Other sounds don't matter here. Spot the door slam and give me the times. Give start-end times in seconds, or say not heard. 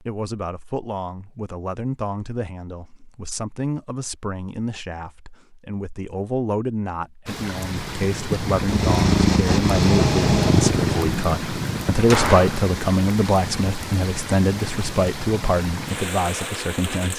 11.9-12.7.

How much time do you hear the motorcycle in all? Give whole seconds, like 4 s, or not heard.
3 s.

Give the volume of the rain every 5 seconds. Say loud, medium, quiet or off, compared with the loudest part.
off, loud, loud, loud.